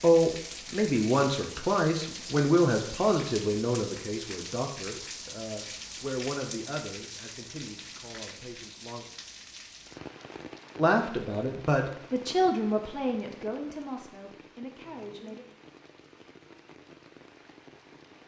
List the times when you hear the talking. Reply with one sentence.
The talking can be heard from 0.0 to 9.1 s and from 10.8 to 15.4 s.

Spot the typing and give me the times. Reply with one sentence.
You can't hear the typing here.